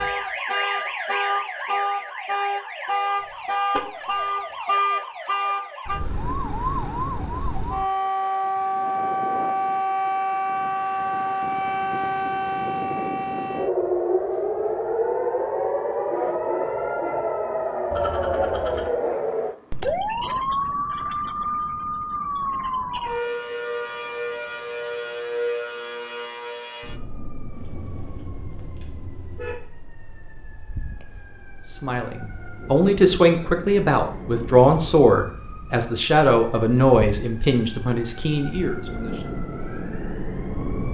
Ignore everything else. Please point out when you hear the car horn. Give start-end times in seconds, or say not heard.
3.2-4.2, 17.9-18.9, 27.5-29.6.